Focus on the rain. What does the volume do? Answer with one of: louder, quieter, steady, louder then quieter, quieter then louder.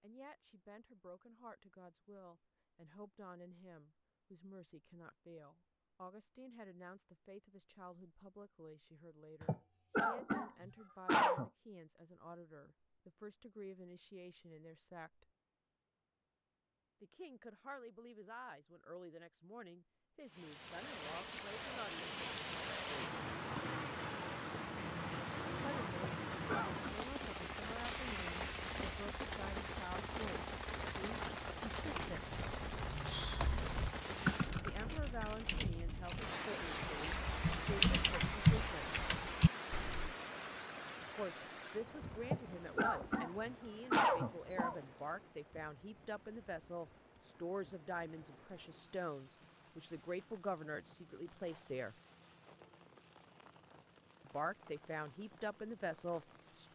quieter.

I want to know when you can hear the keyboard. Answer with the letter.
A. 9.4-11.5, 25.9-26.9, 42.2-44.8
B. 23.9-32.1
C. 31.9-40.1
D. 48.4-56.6
C.